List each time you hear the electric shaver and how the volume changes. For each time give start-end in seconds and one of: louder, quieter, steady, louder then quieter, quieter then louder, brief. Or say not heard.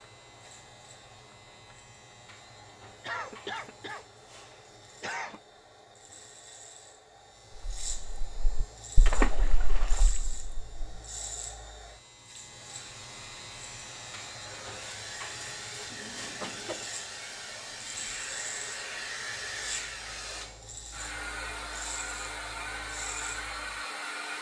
0.0-24.3 louder.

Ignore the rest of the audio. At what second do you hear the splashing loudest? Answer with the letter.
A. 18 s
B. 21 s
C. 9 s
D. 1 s
C.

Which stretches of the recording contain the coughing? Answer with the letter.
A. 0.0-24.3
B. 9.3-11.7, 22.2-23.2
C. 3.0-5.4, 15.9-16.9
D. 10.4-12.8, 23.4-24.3
C.